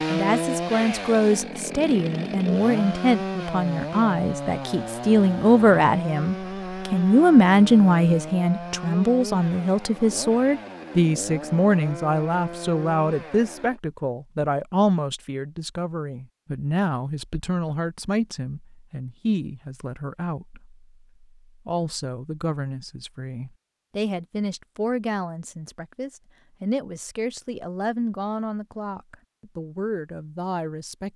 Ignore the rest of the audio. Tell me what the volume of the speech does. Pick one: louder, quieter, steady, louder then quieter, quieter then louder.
quieter.